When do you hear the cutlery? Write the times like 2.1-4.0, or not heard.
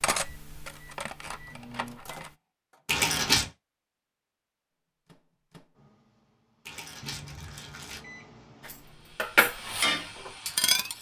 0.0-2.3, 8.6-10.9.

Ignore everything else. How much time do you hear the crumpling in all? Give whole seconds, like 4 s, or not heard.
2 s.